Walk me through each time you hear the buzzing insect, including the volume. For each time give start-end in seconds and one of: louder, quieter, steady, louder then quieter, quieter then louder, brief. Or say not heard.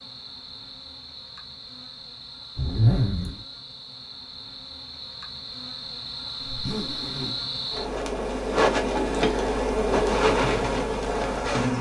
0.0-11.7 louder.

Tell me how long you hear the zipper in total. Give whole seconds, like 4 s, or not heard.
2 s.